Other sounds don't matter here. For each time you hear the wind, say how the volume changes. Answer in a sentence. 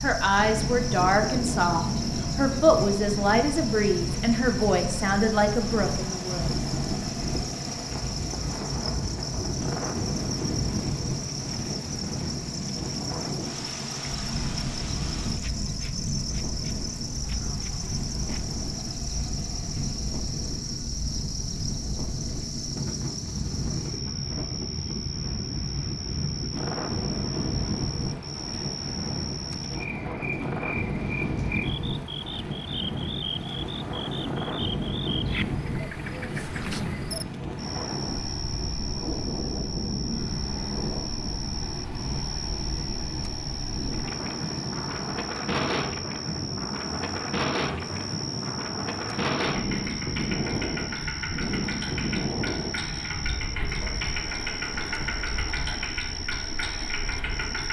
The wind can be heard from 0.0 to 57.6 s, at a steady volume.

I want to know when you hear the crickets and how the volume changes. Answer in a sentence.
You can hear the crickets from 0.0 to 57.6 s, at a steady volume.